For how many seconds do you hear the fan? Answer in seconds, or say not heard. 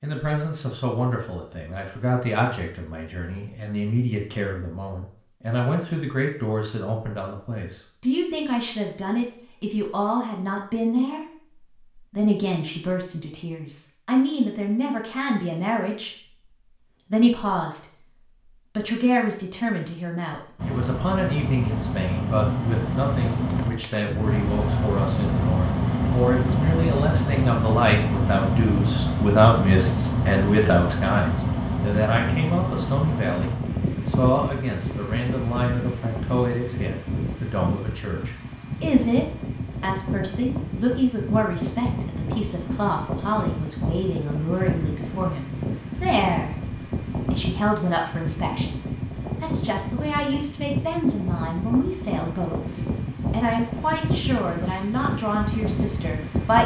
36 s.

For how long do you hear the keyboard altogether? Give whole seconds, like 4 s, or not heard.
not heard.